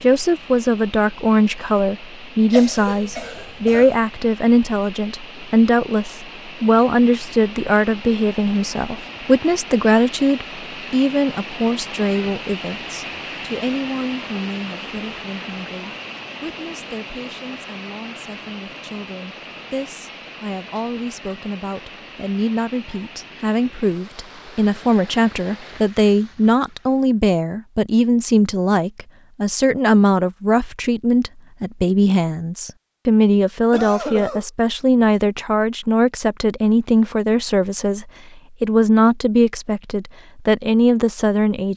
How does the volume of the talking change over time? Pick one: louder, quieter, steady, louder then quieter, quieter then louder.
quieter then louder.